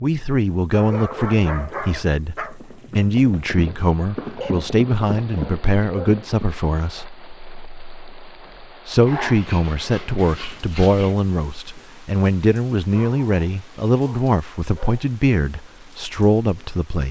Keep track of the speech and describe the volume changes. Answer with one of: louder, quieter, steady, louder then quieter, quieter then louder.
steady.